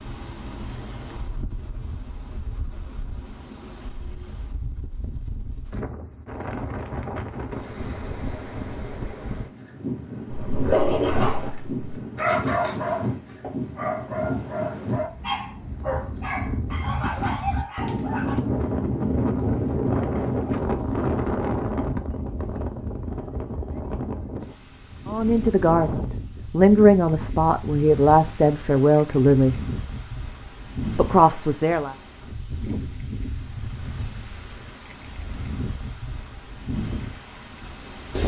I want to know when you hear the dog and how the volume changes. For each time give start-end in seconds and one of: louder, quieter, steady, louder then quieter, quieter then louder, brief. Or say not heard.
10.3-18.4 quieter.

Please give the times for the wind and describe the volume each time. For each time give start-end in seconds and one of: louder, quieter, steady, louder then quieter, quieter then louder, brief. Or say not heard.
0.0-38.2 louder then quieter.